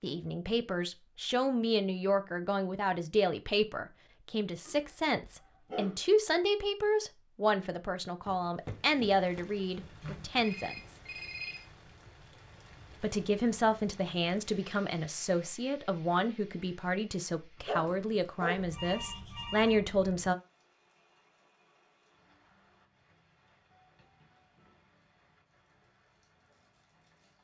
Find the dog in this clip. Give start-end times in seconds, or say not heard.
4.7-6.0, 17.6-19.4.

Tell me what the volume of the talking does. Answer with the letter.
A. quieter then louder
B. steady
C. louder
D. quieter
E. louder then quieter
B.